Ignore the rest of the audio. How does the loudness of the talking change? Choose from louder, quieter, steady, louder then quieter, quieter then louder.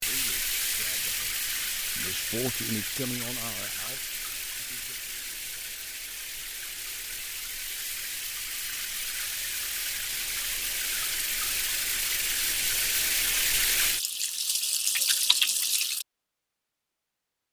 louder then quieter.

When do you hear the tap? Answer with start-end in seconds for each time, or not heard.
0.0-16.1.